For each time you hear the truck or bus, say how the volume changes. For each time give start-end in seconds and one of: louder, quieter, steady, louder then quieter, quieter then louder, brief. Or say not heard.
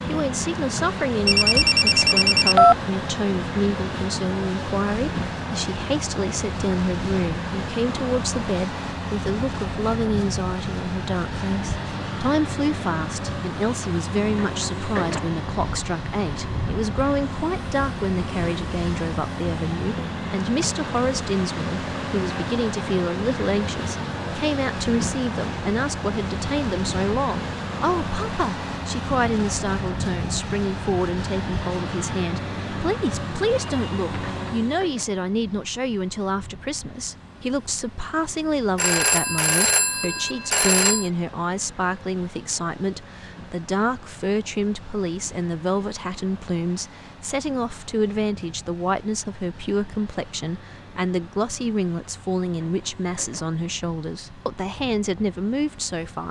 0.0-56.2 quieter.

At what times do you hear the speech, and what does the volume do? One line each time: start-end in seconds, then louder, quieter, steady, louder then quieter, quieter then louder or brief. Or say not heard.
0.1-56.2 steady.